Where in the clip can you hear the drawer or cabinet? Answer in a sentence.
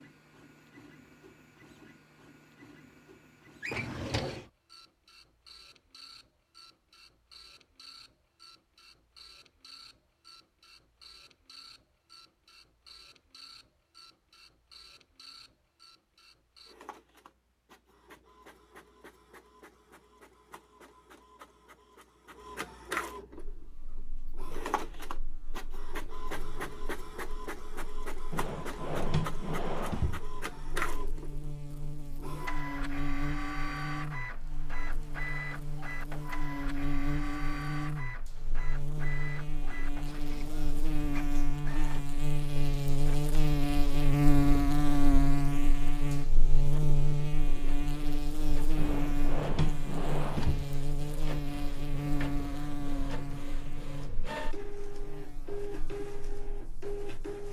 The drawer or cabinet can be heard from 3.6 to 4.5 s, from 28.3 to 30.2 s and from 48.8 to 50.6 s.